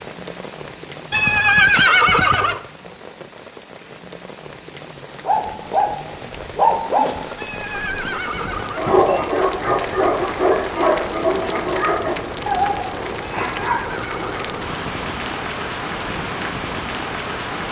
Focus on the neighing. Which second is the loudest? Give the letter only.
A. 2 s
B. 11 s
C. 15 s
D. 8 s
A.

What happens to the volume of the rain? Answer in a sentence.
The volume of the rain goes up.